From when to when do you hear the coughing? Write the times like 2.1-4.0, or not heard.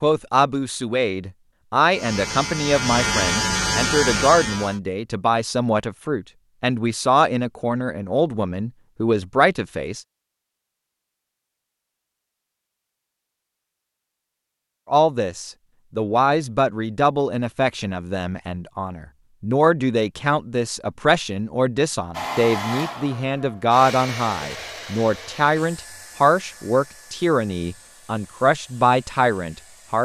not heard.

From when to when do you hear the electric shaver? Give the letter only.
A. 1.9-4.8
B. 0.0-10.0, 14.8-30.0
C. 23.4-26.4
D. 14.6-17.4
A.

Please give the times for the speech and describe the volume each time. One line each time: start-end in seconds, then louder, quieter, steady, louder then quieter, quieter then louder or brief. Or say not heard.
0.0-10.0 steady
14.8-30.0 steady.